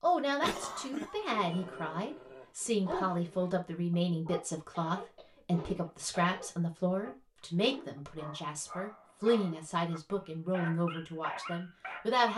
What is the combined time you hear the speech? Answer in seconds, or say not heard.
12 s.